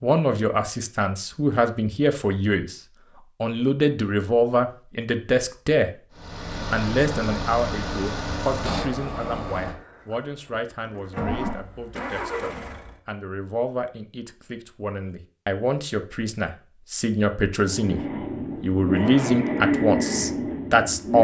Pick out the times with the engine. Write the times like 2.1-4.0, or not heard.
6.2-12.9, 17.6-21.2.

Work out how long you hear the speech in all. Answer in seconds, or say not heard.
20 s.